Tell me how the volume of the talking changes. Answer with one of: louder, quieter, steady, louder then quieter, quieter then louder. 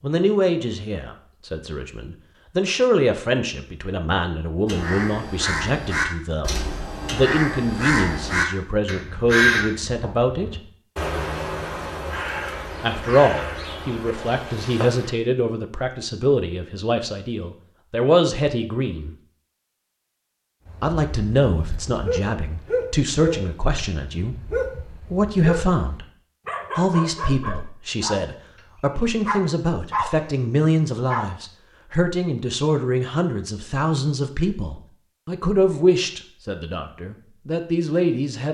steady.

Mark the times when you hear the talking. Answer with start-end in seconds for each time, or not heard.
0.0-10.7, 12.8-19.1, 20.8-26.1, 26.8-38.4.